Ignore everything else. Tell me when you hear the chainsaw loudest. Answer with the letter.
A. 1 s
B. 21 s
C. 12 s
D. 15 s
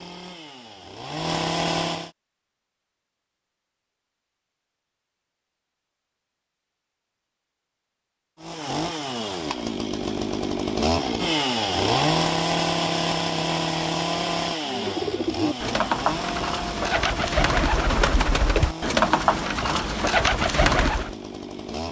C.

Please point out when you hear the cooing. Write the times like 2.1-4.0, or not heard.
14.6-21.1.